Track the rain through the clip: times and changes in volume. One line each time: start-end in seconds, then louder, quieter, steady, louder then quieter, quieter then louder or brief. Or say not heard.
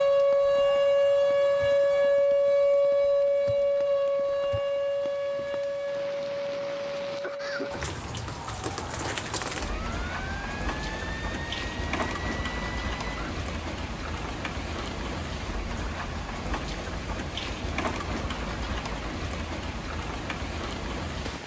0.1-21.4 louder.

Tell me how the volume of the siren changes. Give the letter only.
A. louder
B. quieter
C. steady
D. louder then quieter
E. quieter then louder
B.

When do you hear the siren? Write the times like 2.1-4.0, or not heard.
0.0-13.3.